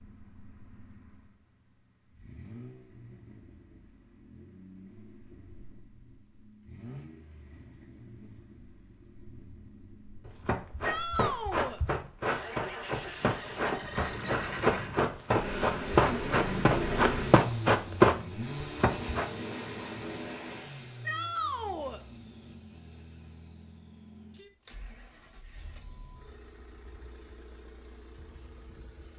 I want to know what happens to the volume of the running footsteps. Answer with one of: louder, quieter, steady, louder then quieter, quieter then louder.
louder.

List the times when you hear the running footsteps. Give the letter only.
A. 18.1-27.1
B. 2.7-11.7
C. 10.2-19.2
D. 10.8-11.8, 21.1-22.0
C.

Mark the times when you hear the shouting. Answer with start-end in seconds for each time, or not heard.
10.8-11.8, 21.1-22.0.